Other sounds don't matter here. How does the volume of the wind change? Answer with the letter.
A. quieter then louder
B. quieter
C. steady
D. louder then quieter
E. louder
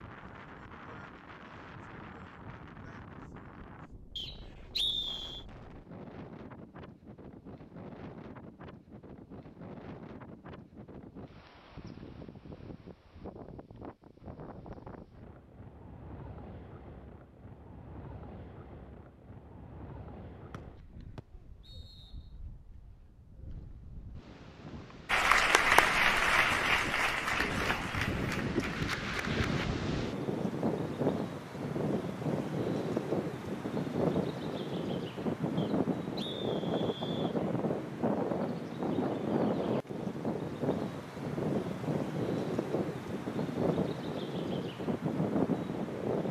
E.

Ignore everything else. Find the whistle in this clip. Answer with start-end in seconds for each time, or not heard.
4.2-5.5, 20.5-22.1, 35.5-37.4.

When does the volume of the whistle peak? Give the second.
5 s.